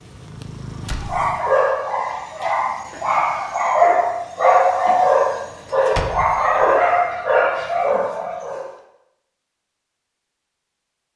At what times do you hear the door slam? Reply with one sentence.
You can hear the door slam from 0.8 to 1.2 s and from 5.7 to 6.7 s.